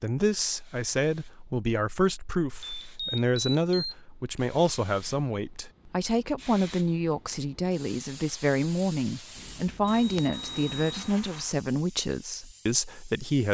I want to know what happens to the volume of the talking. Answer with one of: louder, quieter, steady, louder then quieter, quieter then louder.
steady.